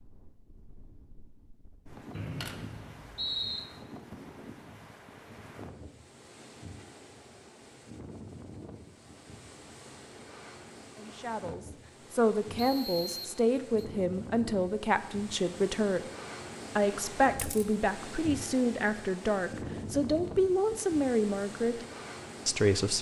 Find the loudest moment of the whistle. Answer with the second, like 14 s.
3 s.